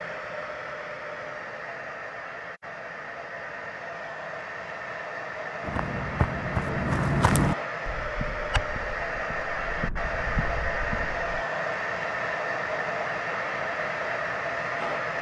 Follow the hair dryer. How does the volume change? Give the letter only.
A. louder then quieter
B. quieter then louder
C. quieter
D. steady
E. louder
E.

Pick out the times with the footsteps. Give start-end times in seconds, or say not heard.
5.6-11.3.